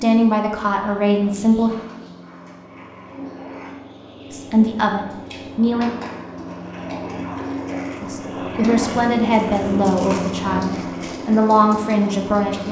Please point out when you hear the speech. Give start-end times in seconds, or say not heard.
0.0-1.7, 4.3-5.9, 8.0-12.6.